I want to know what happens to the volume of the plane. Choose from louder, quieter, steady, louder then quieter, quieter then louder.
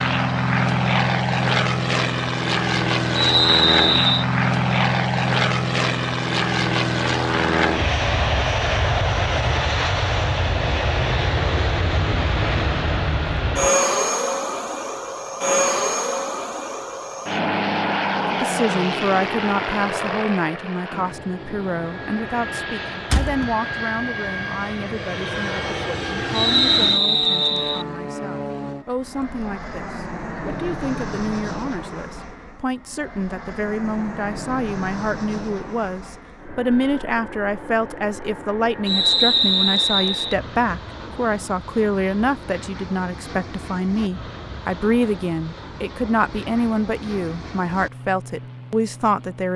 quieter.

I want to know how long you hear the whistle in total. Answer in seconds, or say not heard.
4 s.